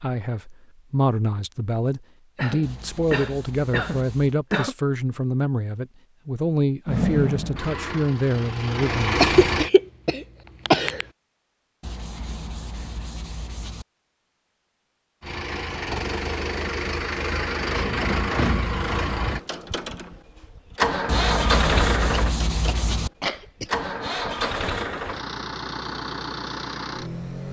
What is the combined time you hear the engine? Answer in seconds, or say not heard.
15 s.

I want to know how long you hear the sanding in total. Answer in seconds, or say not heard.
6 s.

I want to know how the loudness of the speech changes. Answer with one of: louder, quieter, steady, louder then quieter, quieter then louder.
steady.